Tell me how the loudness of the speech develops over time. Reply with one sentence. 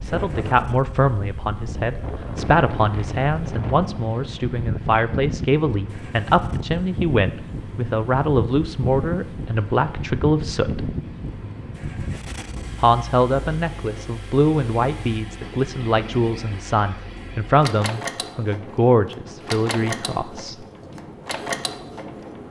The volume of the speech stays about the same.